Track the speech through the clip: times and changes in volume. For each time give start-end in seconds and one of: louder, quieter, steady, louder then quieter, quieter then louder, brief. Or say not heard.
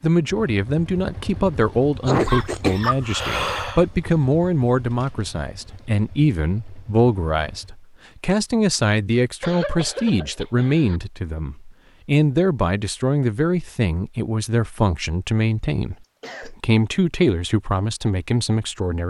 0.0-19.0 steady.